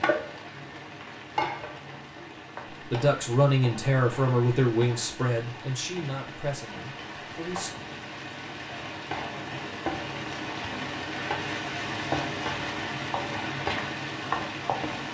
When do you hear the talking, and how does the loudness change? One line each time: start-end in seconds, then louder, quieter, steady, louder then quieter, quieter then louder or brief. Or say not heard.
2.9-7.7 quieter.